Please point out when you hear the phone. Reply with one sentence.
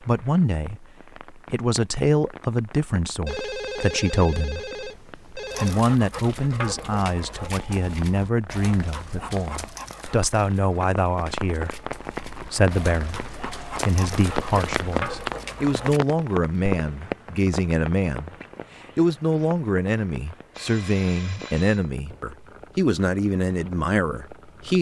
The phone can be heard from 3.2 to 5.8 s and from 20.5 to 21.9 s.